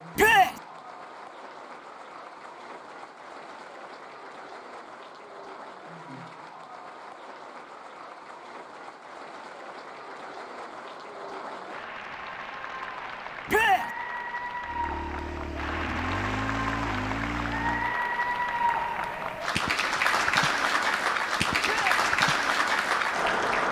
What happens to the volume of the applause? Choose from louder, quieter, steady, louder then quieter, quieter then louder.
louder.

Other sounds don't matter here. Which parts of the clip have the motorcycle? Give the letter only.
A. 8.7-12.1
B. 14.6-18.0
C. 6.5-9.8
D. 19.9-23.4
B.